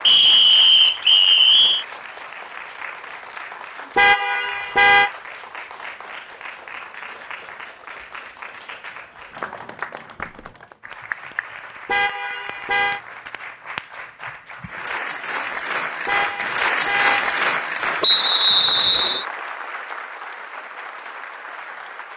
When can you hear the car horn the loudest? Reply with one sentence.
The loudest moment of the car horn is at 5 seconds.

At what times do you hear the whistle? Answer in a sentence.
The whistle can be heard from 0.1 to 1.9 s and from 18.0 to 19.2 s.